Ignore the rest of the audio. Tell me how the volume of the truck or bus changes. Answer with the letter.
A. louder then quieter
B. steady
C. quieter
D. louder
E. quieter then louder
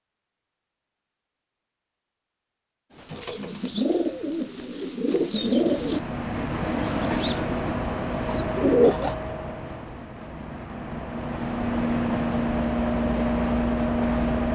E.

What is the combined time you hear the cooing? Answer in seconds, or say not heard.
6 s.